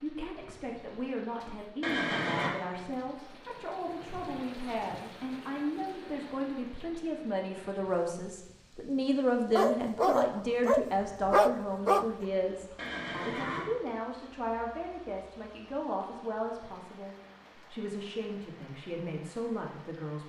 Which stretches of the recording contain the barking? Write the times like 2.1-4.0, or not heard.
9.6-12.2.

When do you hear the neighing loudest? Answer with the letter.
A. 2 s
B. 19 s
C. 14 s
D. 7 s
A.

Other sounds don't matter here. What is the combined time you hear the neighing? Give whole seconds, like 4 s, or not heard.
2 s.